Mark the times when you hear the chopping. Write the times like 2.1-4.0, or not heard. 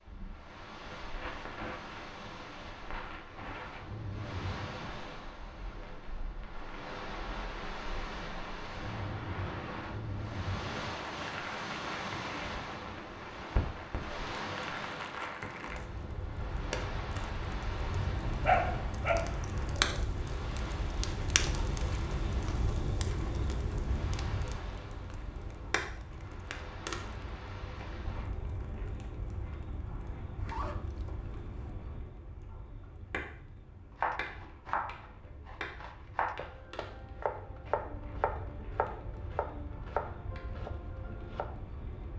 34.0-41.5.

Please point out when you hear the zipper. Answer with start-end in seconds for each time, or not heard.
30.4-31.7.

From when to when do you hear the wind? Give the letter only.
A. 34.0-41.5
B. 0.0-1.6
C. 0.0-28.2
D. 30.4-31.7
C.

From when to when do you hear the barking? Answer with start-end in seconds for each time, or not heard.
18.4-20.1.